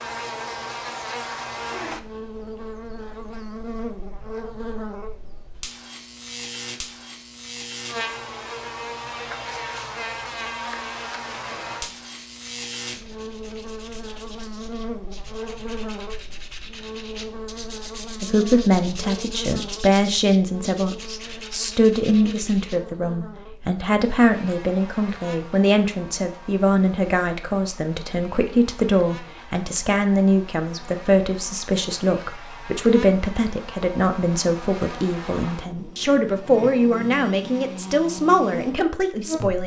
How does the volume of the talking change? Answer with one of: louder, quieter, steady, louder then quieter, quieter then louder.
steady.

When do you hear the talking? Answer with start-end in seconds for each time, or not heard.
18.2-39.6.